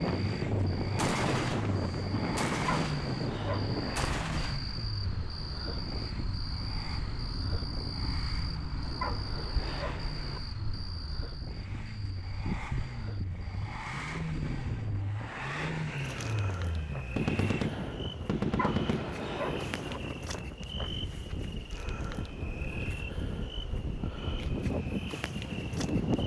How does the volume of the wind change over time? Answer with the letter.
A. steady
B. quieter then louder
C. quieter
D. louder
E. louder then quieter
B.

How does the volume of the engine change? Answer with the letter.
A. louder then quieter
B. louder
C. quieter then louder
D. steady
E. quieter
C.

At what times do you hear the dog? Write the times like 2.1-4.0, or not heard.
2.6-3.9, 9.0-10.4, 18.6-20.0.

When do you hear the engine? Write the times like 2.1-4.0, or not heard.
0.0-17.7.